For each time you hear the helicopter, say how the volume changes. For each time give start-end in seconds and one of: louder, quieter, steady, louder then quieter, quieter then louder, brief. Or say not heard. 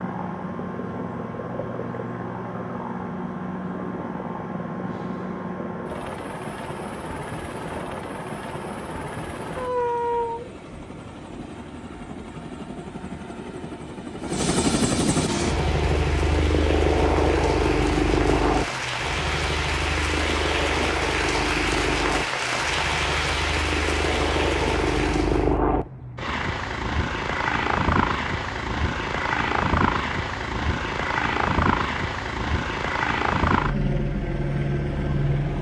0.0-35.5 louder.